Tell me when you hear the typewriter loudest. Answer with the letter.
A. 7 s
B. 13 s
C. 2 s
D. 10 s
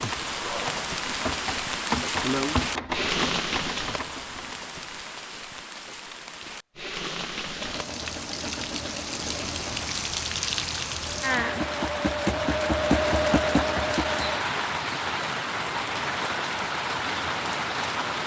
C.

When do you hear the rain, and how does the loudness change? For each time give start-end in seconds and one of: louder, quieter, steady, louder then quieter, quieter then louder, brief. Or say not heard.
0.0-18.2 quieter then louder.